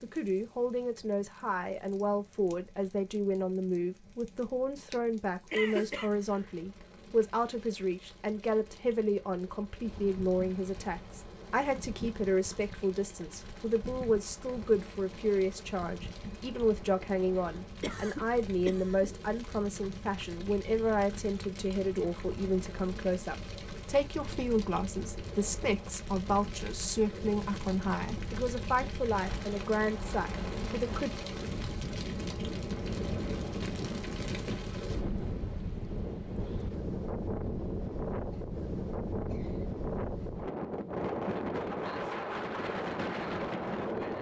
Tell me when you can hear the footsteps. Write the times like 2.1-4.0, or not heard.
not heard.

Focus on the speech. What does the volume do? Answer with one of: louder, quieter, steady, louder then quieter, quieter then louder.
steady.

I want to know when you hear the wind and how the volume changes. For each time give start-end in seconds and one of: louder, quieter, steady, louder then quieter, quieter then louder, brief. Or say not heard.
9.8-44.1 louder.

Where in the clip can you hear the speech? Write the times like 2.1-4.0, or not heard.
0.0-31.1.